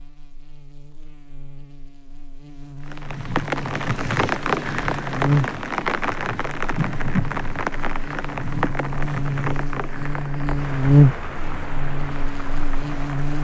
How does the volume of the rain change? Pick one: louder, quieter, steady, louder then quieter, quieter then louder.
quieter.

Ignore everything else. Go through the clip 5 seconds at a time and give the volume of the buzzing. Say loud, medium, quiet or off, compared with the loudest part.
quiet, medium, loud.